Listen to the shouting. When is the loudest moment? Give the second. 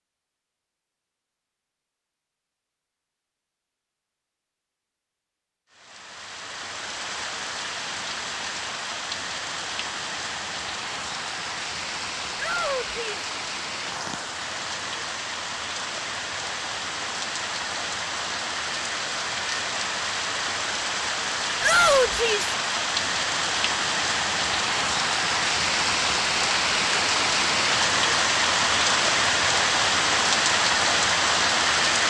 22 s.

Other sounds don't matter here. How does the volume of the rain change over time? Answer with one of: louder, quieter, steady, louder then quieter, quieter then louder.
louder.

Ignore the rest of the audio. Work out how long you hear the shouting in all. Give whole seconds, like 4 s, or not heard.
2 s.